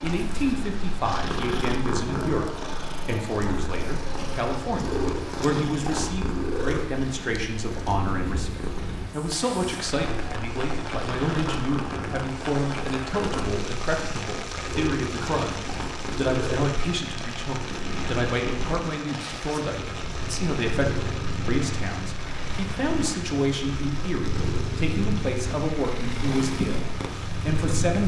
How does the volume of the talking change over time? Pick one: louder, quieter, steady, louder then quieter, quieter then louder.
steady.